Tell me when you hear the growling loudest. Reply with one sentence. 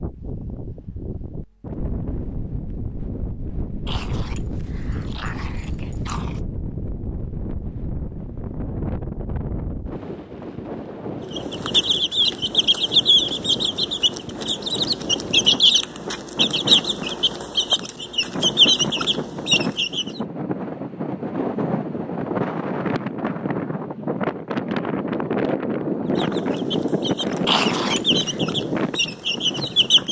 The volume of the growling peaks at 28 seconds.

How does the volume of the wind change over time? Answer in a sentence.
The loudness of the wind goes up.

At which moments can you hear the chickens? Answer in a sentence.
The chickens can be heard from 11.2 to 20.2 s and from 26.1 to 30.0 s.